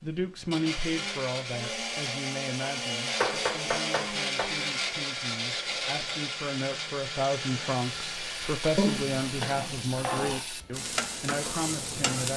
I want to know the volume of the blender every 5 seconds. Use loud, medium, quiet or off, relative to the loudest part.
loud, loud, off.